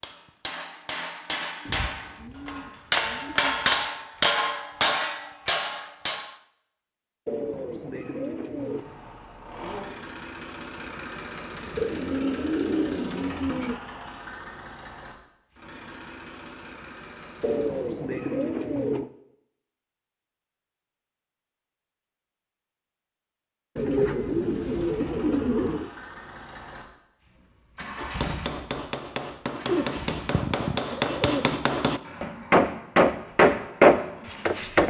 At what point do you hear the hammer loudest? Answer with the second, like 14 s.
34 s.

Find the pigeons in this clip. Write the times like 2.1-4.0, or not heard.
1.6-3.9, 7.2-8.8, 11.8-13.8, 17.4-19.1, 23.8-25.9, 29.6-31.5.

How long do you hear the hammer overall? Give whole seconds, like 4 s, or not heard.
13 s.